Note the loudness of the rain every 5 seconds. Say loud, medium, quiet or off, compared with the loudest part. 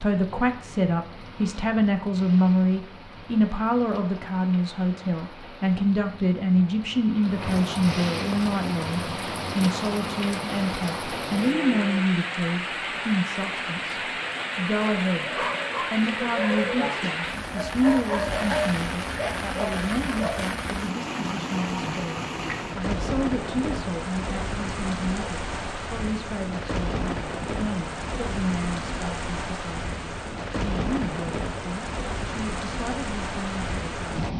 quiet, loud, loud, loud, loud, loud, loud.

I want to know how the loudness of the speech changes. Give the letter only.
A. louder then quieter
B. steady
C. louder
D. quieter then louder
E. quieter
E.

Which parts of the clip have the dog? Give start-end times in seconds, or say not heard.
15.2-20.4.